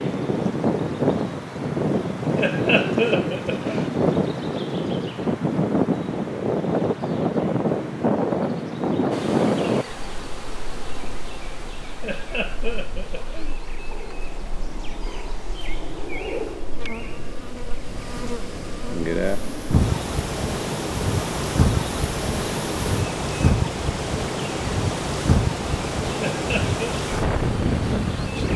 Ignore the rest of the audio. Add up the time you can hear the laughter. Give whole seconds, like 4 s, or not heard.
4 s.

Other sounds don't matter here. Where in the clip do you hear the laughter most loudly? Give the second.
3 s.